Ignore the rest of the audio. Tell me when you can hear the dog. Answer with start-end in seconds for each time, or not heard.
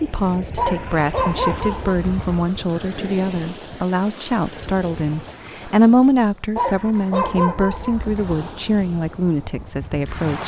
0.6-2.4, 6.5-8.3.